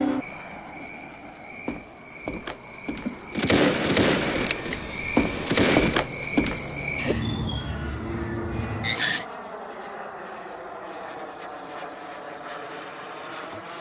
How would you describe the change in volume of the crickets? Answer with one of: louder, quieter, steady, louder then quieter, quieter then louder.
louder.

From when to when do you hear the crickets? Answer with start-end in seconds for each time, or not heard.
0.0-9.2.